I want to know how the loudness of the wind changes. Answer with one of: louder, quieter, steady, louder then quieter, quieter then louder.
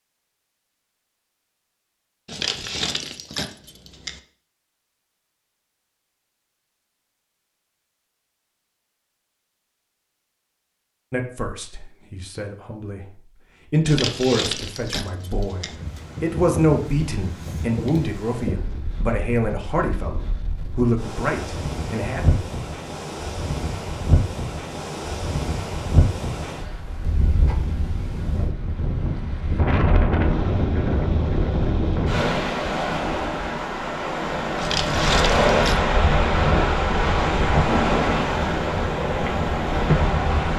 louder.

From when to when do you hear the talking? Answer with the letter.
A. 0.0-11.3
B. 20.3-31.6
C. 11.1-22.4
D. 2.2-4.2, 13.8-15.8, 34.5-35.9
C.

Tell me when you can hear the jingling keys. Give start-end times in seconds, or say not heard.
2.2-4.2, 13.8-15.8, 34.5-35.9.